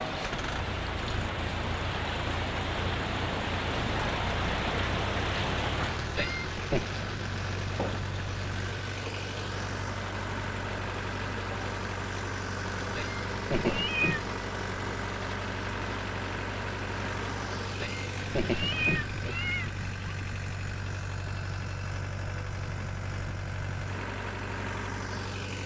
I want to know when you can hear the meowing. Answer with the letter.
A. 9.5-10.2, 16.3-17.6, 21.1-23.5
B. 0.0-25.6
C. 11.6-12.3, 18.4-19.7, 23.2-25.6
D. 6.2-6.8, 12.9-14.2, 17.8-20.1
D.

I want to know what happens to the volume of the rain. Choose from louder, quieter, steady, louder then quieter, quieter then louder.
quieter.